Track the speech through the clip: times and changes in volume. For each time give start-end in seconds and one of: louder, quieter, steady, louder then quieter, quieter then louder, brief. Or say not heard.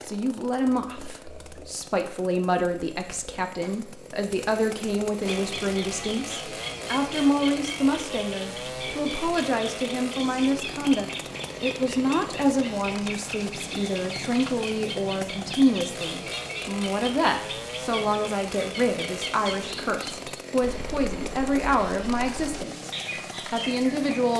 0.1-22.9 steady
23.5-24.3 brief.